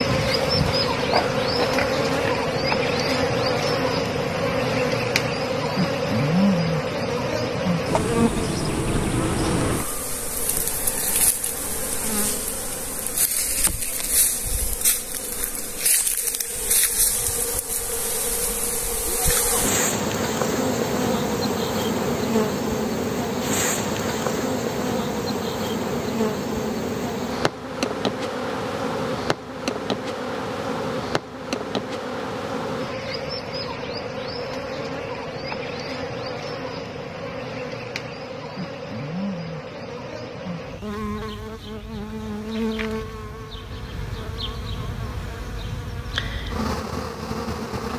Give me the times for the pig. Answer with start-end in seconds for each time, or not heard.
0.0-2.5.